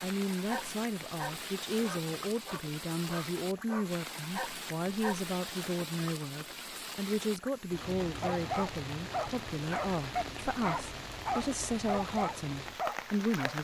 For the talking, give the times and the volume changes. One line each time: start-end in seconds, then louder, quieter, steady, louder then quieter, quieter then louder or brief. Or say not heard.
0.0-13.5 steady.